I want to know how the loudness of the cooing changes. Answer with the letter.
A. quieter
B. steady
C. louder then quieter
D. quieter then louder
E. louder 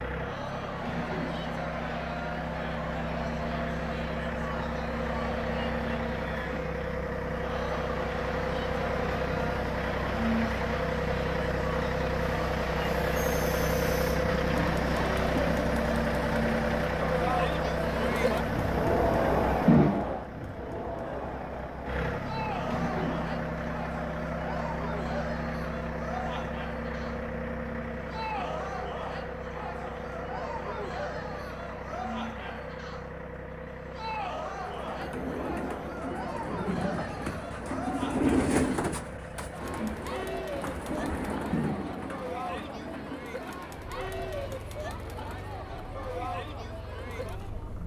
C.